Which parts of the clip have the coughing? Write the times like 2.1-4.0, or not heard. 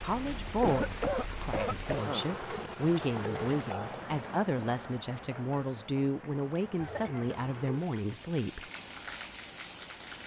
0.6-2.2, 6.8-7.3.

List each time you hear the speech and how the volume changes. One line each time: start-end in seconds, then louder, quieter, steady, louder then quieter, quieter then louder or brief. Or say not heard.
0.0-8.6 steady.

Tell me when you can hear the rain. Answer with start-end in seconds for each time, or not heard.
0.0-10.2.